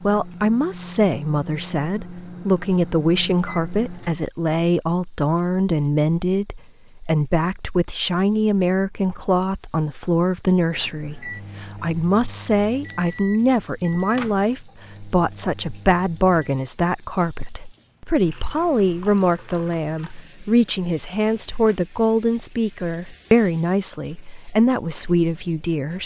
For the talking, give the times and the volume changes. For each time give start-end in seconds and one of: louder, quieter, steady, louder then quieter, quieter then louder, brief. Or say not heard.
0.0-26.0 steady.